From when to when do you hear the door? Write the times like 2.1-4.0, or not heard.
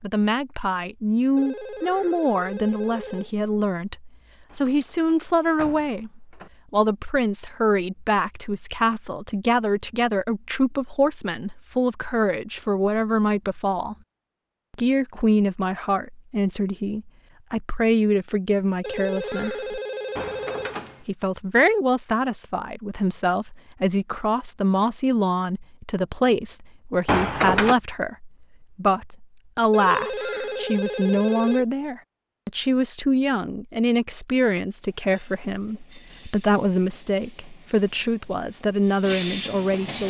4.5-6.5, 20.1-21.1, 27.1-27.8.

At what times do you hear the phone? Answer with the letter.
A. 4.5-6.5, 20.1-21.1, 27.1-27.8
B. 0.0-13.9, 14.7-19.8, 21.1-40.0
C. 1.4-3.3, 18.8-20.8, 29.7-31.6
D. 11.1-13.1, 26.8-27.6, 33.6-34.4
C.